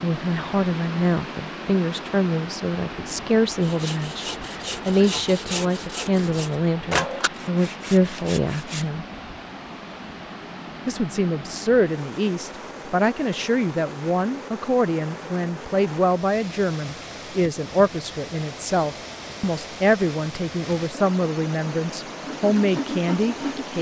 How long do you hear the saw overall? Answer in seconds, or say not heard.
7 s.